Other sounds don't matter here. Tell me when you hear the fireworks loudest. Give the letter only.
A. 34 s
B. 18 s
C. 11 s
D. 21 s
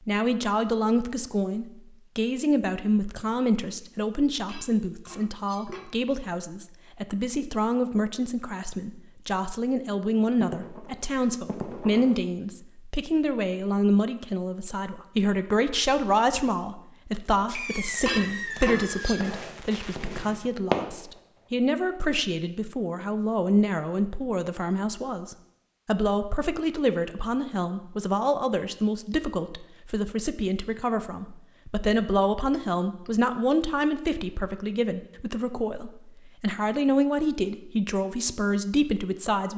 D.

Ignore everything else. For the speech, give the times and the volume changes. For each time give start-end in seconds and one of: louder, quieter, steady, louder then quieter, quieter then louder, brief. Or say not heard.
0.1-39.5 steady.